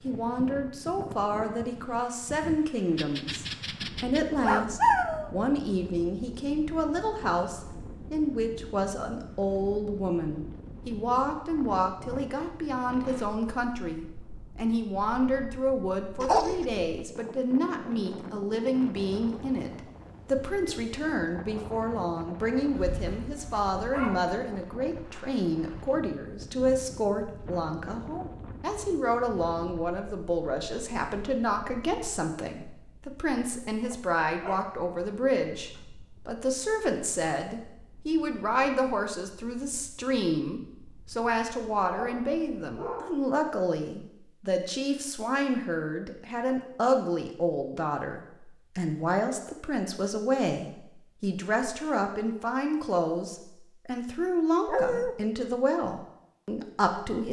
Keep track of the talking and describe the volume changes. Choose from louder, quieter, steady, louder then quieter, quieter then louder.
steady.